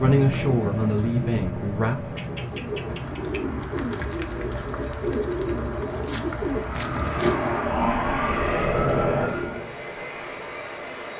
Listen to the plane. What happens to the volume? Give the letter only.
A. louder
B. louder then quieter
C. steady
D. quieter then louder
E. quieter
D.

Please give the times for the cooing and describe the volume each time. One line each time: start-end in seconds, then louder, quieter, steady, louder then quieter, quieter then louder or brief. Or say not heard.
0.1-7.6 louder.